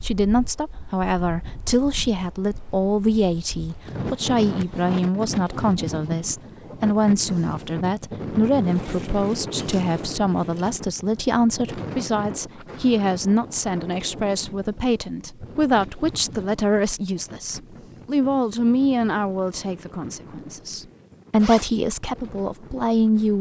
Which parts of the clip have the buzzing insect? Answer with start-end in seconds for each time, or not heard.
not heard.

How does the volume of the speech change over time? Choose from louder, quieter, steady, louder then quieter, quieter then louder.
steady.